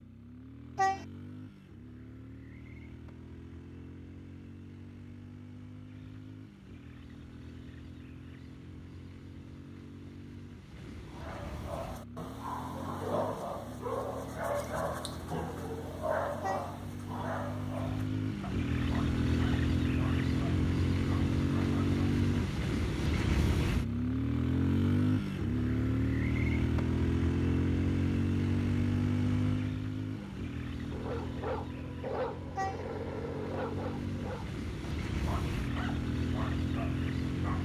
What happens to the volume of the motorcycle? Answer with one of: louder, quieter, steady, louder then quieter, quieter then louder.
louder then quieter.